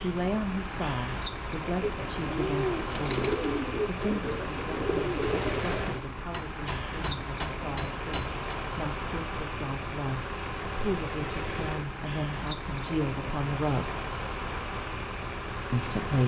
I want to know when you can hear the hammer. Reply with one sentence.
The hammer can be heard from 6.3 to 8.4 s.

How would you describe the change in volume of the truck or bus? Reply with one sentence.
The volume of the truck or bus stays about the same.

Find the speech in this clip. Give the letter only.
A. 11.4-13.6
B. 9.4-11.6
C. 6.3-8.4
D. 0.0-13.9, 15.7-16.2
D.